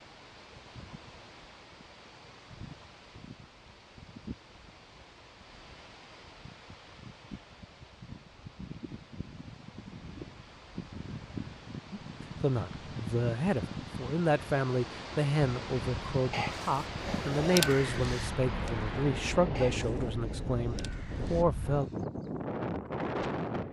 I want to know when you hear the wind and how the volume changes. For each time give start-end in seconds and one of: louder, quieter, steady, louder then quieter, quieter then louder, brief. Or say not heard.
0.0-23.6 louder.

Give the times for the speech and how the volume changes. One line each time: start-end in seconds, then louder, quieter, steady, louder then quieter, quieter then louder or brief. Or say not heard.
11.9-21.9 steady.